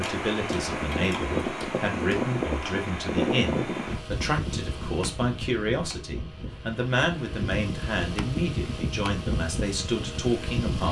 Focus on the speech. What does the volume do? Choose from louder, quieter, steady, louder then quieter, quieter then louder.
steady.